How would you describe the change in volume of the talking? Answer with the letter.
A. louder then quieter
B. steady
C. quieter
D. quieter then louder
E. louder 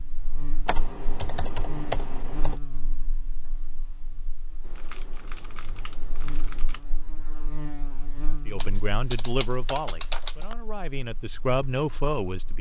D.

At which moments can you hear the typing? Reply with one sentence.
You can hear the typing from 0.7 to 2.6 s, from 4.6 to 6.8 s and from 8.6 to 10.6 s.